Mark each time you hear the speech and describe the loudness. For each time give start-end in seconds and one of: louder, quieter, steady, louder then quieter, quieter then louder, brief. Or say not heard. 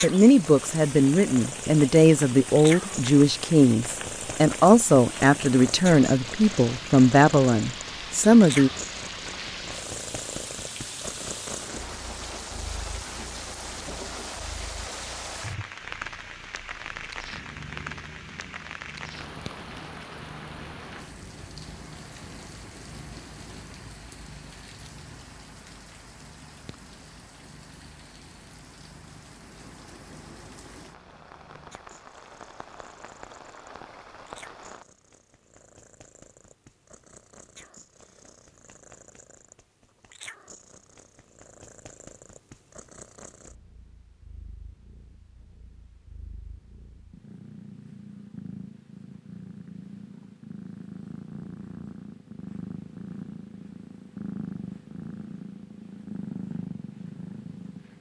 0.0-8.7 steady.